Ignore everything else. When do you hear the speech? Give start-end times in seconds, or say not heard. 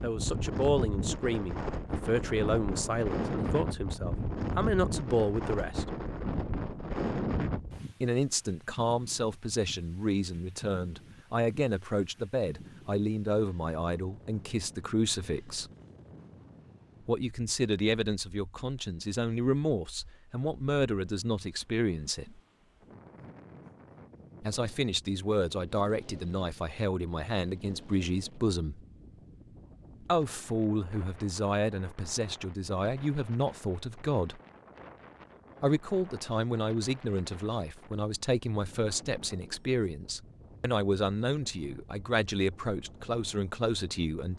0.0-5.8, 8.0-15.7, 17.1-22.4, 24.4-28.8, 30.0-34.4, 35.6-44.3.